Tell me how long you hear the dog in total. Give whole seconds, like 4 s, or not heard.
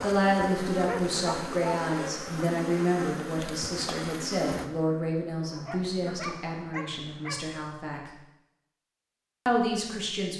3 s.